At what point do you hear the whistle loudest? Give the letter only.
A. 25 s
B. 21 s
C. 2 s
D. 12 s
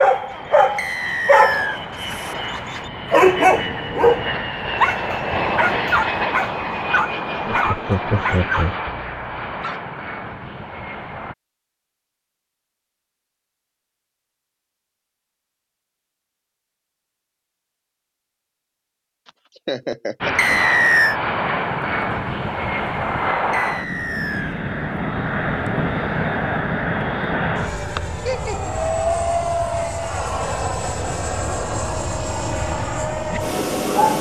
B.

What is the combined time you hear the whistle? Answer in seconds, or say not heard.
3 s.